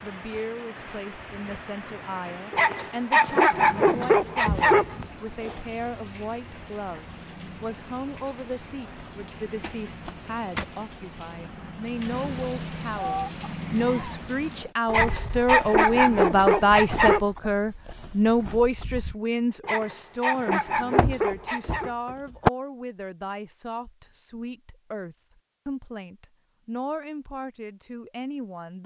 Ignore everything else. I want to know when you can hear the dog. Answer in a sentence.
The dog can be heard from 2.5 to 5.0 s, from 14.9 to 17.2 s and from 19.6 to 21.9 s.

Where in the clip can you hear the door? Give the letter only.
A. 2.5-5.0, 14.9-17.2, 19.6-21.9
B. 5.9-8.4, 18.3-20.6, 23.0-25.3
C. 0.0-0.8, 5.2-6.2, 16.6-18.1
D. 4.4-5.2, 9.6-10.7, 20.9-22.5
D.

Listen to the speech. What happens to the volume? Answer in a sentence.
The loudness of the speech goes up, then down.